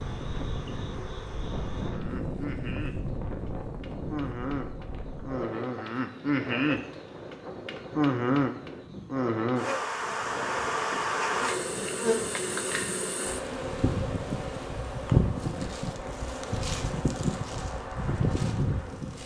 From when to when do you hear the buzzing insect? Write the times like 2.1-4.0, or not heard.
0.0-19.2.